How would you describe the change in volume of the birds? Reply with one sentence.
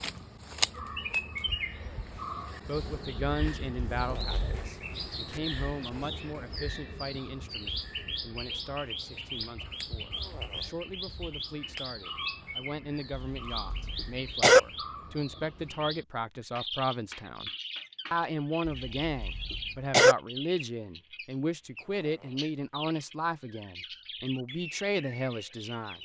The loudness of the birds goes down.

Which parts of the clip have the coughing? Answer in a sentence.
You can hear the coughing from 3.8 to 4.4 s, from 13.1 to 14.6 s and from 18.6 to 20.1 s.